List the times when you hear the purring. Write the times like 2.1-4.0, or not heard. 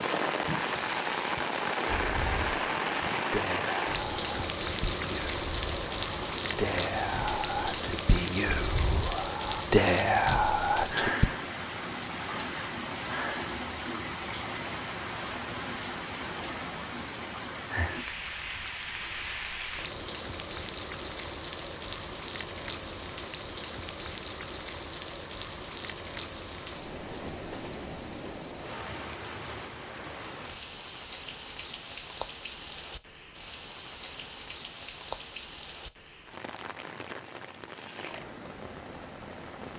not heard.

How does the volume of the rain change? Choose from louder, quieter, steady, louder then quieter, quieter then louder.
quieter.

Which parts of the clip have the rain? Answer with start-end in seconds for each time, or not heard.
0.0-39.7.